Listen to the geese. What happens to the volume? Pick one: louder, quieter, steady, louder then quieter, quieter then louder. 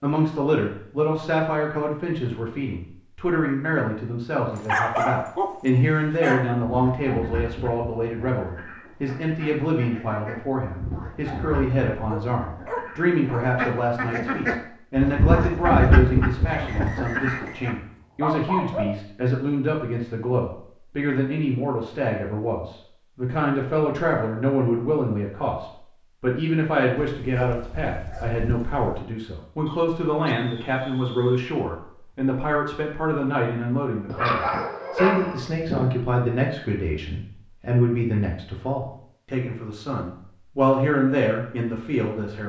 louder.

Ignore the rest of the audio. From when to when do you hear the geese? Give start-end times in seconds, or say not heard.
6.7-17.8.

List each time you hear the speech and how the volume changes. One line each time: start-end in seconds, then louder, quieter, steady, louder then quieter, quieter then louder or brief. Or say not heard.
0.0-42.4 steady.